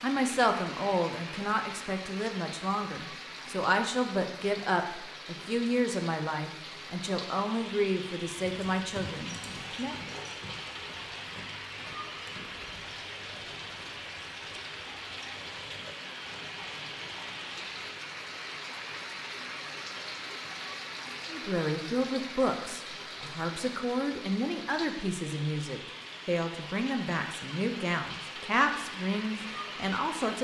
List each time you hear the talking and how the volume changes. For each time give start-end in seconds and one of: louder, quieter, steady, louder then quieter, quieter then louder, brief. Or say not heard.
0.0-9.9 steady
21.3-30.3 steady.